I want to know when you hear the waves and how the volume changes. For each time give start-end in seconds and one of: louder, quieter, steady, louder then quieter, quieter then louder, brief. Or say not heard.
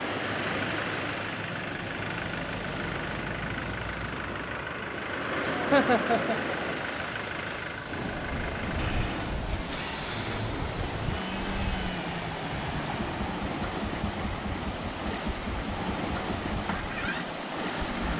0.0-18.1 steady.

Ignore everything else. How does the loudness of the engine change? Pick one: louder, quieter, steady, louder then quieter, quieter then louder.
steady.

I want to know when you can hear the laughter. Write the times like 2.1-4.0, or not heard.
5.5-6.5.